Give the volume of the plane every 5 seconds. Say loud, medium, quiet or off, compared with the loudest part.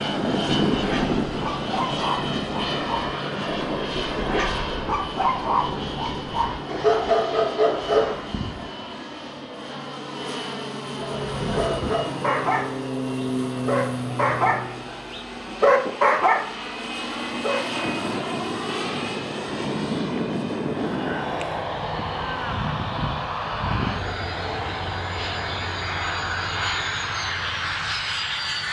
loud, medium, loud, loud, loud, loud.